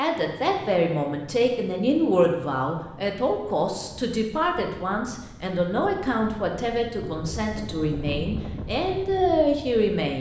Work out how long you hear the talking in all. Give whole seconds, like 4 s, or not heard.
10 s.